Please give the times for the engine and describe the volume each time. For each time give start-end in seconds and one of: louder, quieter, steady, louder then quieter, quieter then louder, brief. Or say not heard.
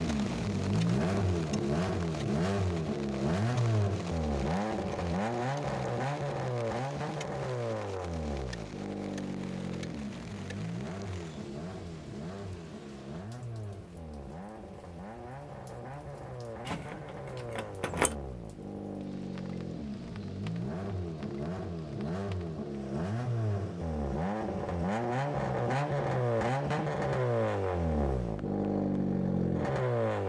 0.0-30.2 quieter then louder.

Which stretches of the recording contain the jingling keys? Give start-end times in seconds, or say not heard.
16.6-18.1.